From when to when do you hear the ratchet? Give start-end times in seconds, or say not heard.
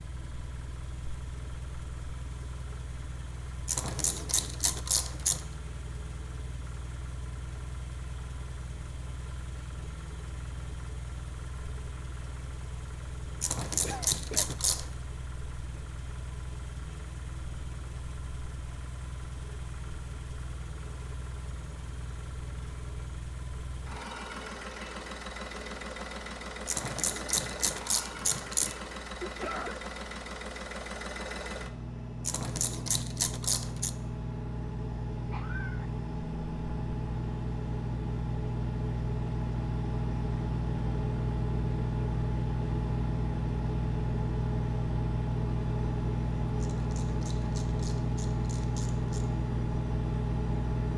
3.6-5.5, 13.4-14.9, 26.6-28.8, 32.2-34.0, 46.6-49.3.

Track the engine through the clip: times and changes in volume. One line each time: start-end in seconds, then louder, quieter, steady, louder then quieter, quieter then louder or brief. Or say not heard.
0.0-50.9 louder.